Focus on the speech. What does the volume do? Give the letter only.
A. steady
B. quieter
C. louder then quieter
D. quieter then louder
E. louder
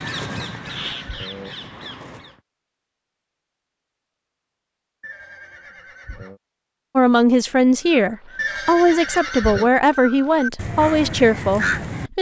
A.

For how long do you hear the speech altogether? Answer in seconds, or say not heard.
5 s.